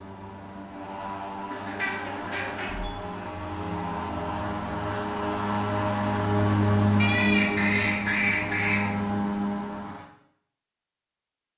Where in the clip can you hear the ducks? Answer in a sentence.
The ducks can be heard from 1.5 to 2.9 s and from 7.0 to 8.9 s.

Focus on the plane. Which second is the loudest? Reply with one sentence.
The volume of the plane peaks at 7 seconds.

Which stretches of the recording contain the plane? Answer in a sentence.
The plane can be heard from 0.0 to 10.1 s.